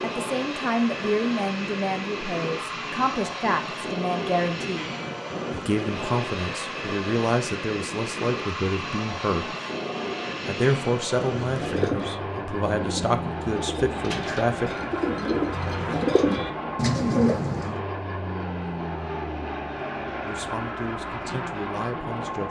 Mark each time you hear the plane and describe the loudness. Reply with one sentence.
You can hear the plane from 0.0 to 22.4 s, at a steady volume.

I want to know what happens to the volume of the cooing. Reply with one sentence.
The volume of the cooing goes down, then up.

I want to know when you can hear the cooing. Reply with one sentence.
You can hear the cooing from 11.4 to 17.8 s.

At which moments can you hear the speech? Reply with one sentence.
The speech can be heard from 0.0 to 4.9 s, from 5.5 to 9.4 s, from 10.4 to 14.7 s and from 20.2 to 22.4 s.